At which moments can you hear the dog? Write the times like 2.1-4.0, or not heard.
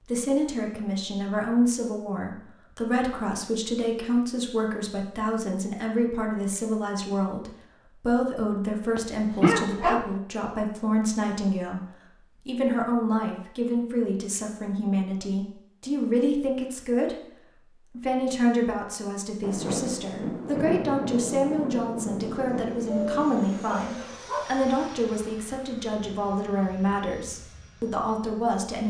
8.9-10.1, 22.9-24.5.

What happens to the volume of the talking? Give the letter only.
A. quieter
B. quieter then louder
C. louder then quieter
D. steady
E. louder
D.